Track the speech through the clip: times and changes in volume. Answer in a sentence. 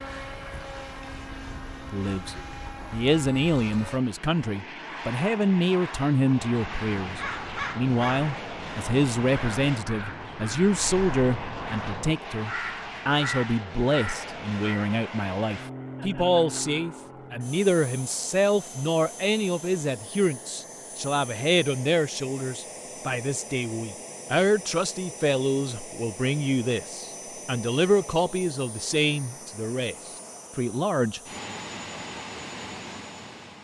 The speech can be heard from 1.9 to 29.9 s, at a steady volume; and briefly from 30.6 to 31.2 s.